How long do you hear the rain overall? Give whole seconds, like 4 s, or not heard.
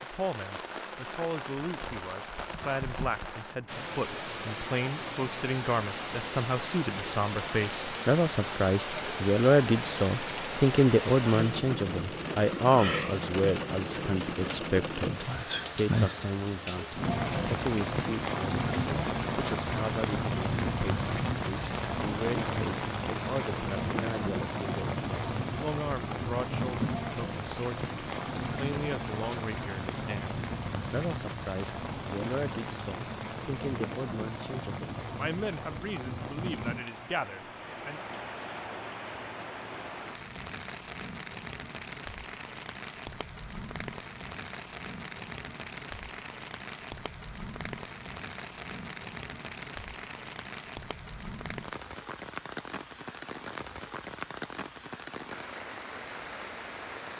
57 s.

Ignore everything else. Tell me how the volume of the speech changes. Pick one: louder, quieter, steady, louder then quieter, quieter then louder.
louder then quieter.